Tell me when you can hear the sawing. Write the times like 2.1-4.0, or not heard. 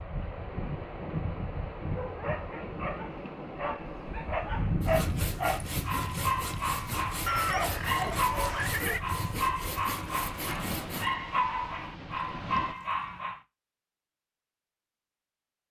4.8-11.2.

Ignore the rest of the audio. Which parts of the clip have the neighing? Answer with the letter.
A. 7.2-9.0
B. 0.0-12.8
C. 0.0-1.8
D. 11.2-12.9
A.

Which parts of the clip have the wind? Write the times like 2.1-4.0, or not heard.
0.0-12.8.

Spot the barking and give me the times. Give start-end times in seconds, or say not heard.
1.9-13.4.